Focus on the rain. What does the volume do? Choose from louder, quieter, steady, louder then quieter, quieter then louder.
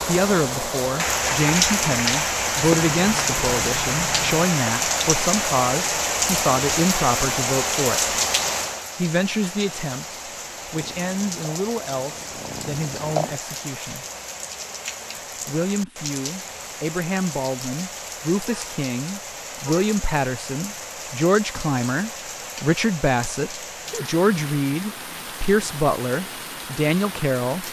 quieter.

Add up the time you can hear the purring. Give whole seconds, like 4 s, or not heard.
3 s.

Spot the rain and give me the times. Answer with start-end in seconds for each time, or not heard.
0.0-27.6.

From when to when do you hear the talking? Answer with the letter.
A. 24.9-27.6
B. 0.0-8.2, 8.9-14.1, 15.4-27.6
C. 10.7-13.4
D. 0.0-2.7
B.